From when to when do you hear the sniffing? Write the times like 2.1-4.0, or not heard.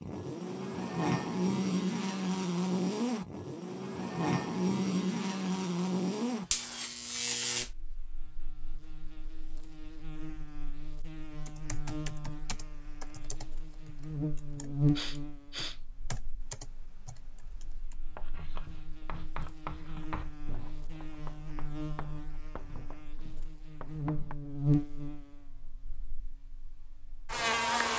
14.6-15.8.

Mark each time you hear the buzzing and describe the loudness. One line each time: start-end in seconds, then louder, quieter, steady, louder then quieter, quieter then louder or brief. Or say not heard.
0.0-27.9 quieter then louder.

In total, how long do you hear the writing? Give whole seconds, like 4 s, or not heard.
6 s.